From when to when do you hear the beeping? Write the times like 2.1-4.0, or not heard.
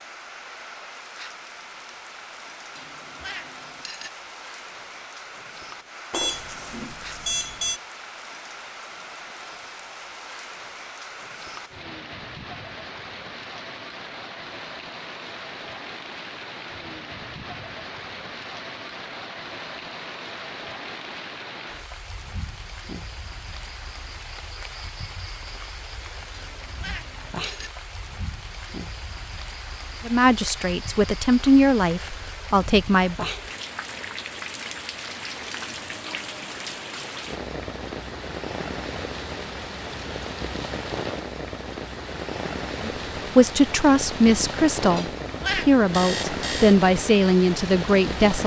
6.1-7.8, 45.9-46.8.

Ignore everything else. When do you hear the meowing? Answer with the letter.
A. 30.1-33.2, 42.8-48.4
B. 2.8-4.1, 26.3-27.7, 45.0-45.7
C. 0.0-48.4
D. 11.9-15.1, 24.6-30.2
B.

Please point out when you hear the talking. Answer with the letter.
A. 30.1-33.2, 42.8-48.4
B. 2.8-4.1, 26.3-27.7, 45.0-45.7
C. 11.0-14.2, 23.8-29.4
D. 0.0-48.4
A.